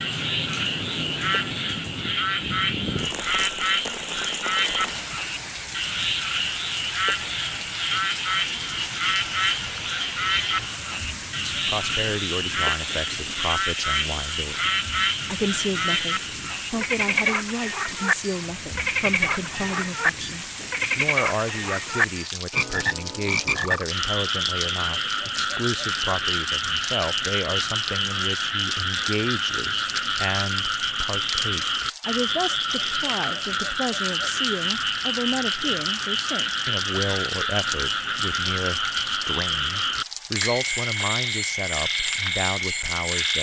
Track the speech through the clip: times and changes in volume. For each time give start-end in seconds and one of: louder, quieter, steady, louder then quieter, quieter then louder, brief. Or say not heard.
11.5-43.3 steady.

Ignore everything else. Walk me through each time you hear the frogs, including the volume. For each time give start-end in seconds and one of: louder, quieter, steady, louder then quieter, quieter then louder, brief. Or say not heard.
0.0-43.3 steady.